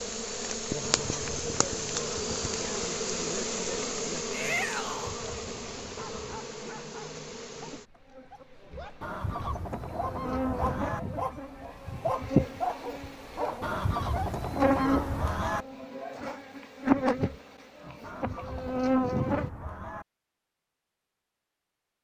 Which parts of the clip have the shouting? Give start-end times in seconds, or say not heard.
4.3-5.2.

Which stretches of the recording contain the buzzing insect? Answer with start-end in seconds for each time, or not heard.
0.0-19.5.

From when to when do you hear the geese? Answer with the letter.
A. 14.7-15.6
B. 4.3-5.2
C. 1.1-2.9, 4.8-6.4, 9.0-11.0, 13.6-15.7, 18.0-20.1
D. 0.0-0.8
C.